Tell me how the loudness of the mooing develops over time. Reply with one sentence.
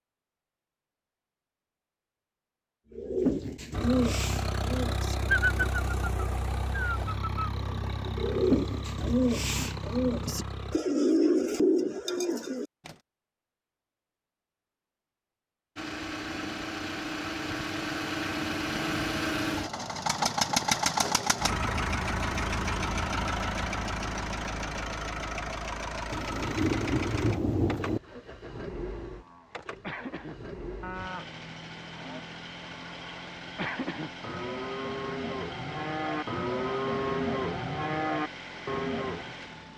The volume of the mooing goes up.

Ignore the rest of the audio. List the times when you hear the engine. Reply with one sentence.
You can hear the engine from 3.7 to 10.8 s and from 15.8 to 39.7 s.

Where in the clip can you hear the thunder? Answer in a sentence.
You can hear the thunder from 26.1 to 28.0 s.